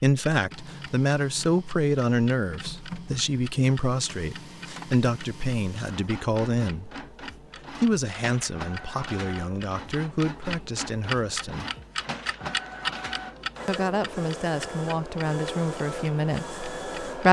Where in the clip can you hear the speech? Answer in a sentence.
You can hear the speech from 0.0 to 6.9 s, from 7.7 to 11.7 s and from 13.7 to 17.2 s.